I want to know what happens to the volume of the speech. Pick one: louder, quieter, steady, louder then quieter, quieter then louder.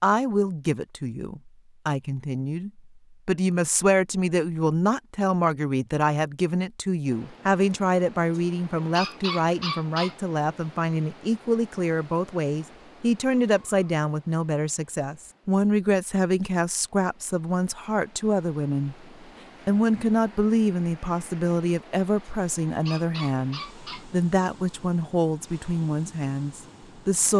steady.